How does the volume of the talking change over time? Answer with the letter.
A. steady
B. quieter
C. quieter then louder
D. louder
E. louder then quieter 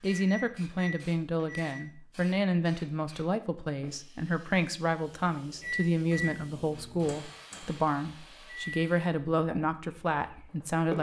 A.